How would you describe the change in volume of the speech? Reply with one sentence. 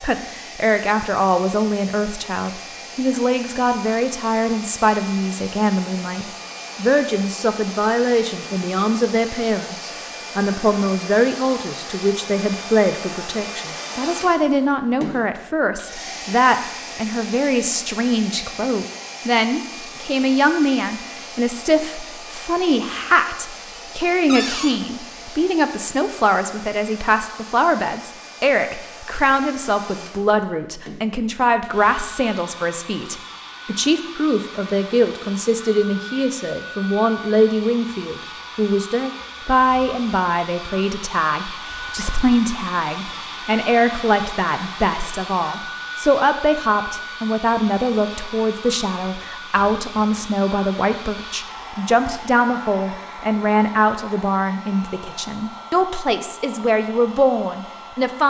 The volume of the speech stays about the same.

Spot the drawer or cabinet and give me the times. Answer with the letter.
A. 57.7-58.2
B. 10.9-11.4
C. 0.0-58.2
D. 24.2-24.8
D.